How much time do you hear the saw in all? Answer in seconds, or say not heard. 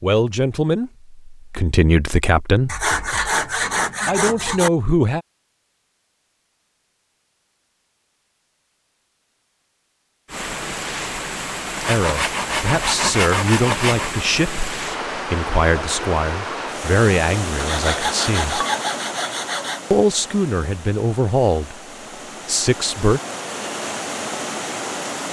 7 s.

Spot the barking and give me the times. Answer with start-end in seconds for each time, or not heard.
not heard.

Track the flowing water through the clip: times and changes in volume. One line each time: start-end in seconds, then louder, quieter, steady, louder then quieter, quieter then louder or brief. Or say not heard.
10.2-25.2 quieter then louder.